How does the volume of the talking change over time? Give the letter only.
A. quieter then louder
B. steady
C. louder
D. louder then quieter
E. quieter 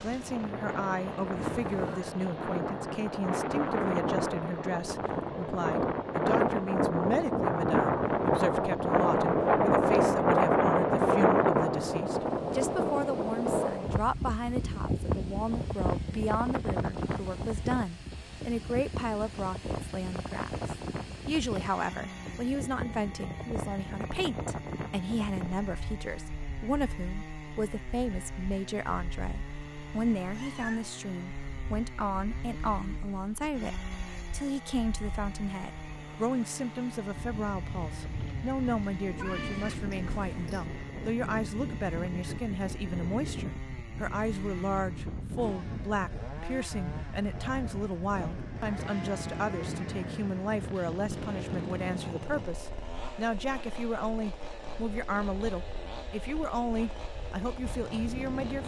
B.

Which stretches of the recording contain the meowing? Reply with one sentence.
The meowing can be heard from 1.4 to 2.0 s, from 30.2 to 30.9 s and from 39.1 to 40.7 s.